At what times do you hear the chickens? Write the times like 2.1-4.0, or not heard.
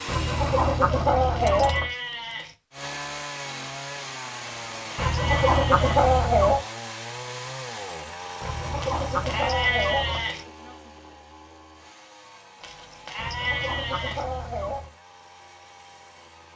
0.1-1.9, 5.0-6.6, 8.4-10.3, 13.2-14.9.